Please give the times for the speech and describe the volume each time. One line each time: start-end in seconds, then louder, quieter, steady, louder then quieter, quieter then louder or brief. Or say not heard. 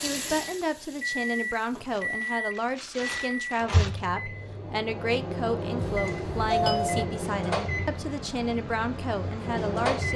0.0-10.1 steady.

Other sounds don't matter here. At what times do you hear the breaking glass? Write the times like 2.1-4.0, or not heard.
not heard.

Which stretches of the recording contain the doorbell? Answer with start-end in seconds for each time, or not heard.
5.8-7.0.